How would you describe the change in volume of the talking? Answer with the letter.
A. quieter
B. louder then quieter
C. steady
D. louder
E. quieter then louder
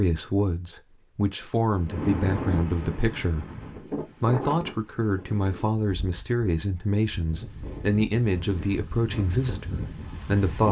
C.